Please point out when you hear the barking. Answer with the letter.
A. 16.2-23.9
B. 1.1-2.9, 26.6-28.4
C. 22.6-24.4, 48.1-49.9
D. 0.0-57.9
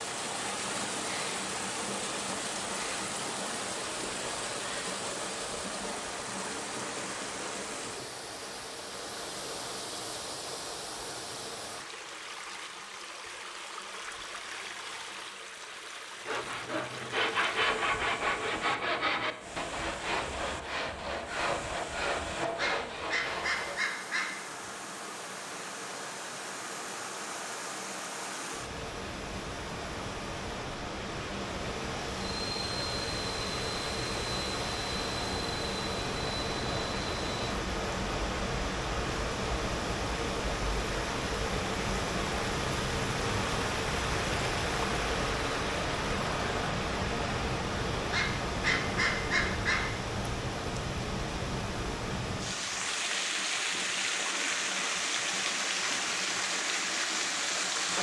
C.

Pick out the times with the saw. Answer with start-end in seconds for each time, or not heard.
16.2-23.9.